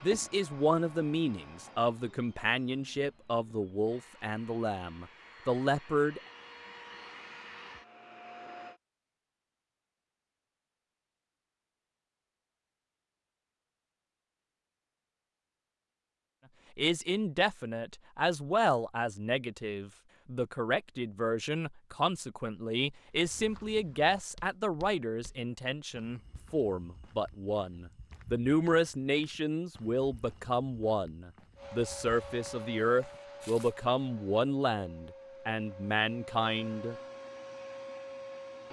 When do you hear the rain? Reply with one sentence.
You can't hear the rain here.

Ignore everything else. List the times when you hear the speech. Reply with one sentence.
The speech can be heard from 0.0 to 6.2 s and from 16.8 to 37.0 s.